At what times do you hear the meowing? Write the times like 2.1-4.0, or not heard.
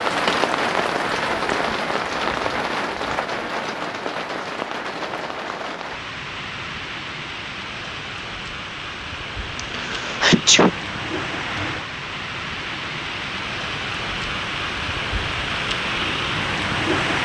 not heard.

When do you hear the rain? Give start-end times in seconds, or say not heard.
0.0-17.1.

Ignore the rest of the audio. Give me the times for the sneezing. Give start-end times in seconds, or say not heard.
9.6-10.7.